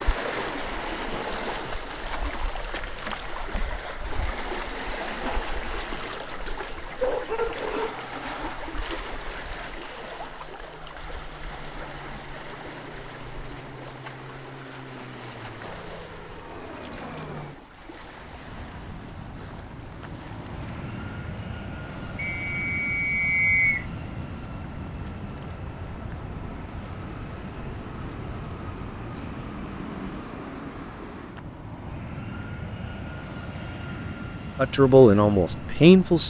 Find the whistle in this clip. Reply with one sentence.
You can hear the whistle from 22.1 to 23.9 s.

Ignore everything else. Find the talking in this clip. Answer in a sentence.
You can hear the talking from 34.5 to 36.2 s.